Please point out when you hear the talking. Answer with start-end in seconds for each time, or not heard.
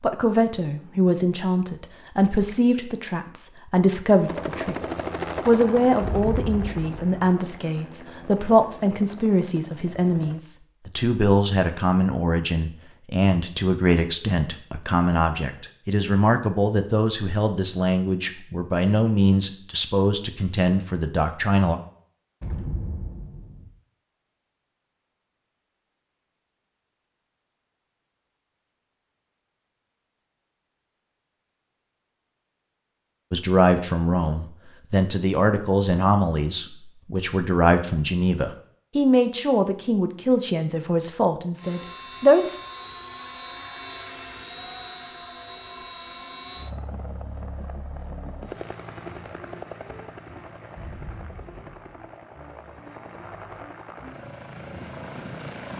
0.0-21.8, 33.3-42.6.